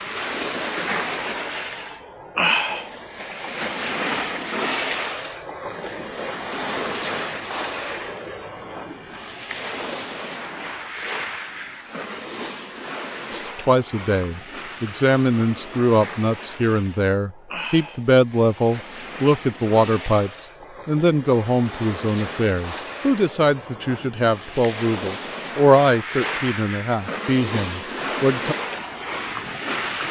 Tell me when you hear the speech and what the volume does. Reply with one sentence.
The speech can be heard from 13.3 to 28.6 s, at a steady volume.